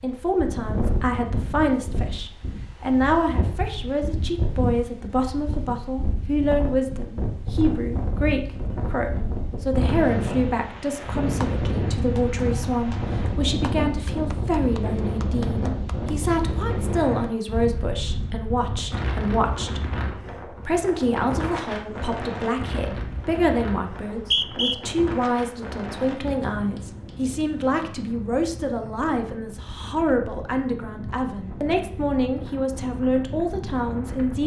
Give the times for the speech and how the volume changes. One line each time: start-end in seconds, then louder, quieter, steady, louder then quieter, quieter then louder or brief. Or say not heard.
0.0-34.4 steady.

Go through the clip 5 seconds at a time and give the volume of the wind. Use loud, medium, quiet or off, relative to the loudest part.
loud, loud, loud, loud, medium, medium, medium.